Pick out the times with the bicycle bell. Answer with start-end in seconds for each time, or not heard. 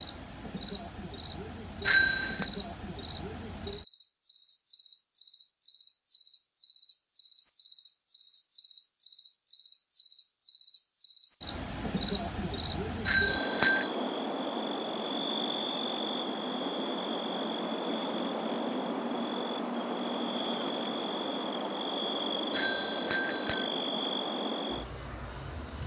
1.9-2.5, 13.1-13.9, 22.5-23.6.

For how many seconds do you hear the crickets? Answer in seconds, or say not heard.
26 s.